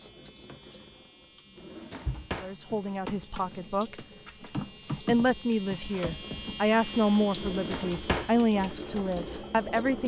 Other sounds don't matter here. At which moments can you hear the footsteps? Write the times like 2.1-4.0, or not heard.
not heard.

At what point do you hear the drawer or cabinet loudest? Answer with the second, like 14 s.
8 s.